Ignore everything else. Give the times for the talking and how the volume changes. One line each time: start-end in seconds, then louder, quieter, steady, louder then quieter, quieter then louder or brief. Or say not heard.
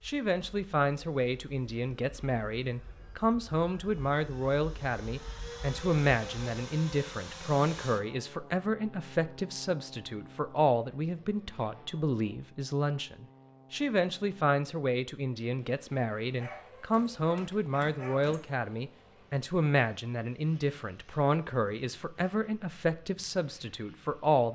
0.1-24.5 steady.